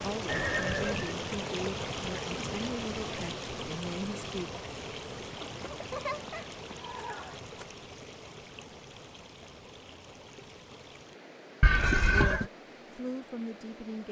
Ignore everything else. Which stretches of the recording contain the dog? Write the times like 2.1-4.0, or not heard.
not heard.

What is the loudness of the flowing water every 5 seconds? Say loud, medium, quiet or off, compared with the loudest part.
loud, medium, quiet.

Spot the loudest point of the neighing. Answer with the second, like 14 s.
12 s.